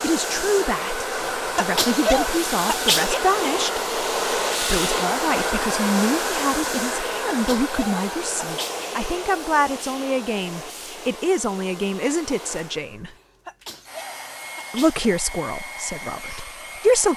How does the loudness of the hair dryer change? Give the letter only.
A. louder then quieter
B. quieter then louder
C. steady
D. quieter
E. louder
D.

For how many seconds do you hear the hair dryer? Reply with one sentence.
You can hear the hair dryer for 17 seconds altogether.